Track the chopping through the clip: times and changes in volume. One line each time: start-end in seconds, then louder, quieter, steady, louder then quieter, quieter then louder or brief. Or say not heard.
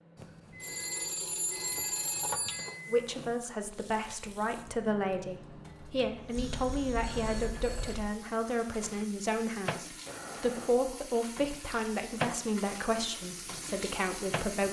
not heard.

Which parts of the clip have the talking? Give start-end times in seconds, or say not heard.
2.9-14.6.